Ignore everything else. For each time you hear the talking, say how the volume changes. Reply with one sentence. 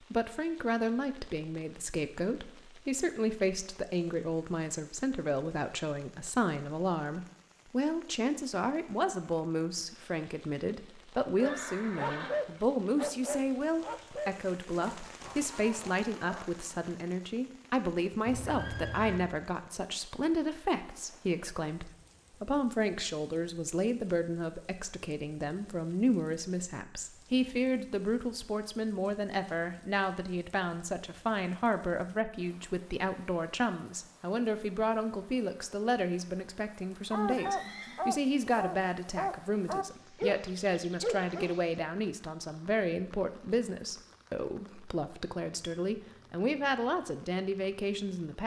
The talking can be heard from 0.1 to 48.4 s, at a steady volume.